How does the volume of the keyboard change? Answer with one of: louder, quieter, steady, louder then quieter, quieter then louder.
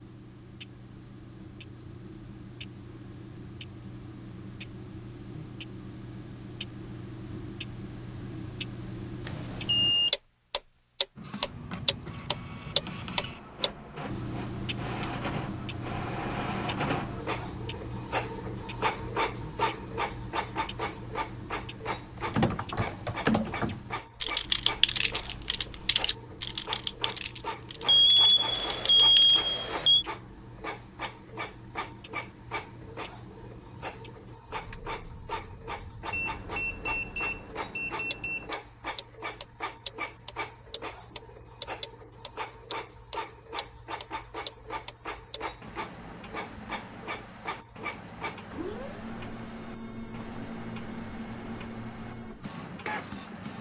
quieter.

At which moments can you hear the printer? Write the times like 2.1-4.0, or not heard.
11.2-53.5.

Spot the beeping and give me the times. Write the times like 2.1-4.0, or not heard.
9.2-10.1, 27.9-30.1, 36.1-38.5.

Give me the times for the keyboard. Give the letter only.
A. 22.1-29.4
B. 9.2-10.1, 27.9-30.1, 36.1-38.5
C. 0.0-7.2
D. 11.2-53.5
A.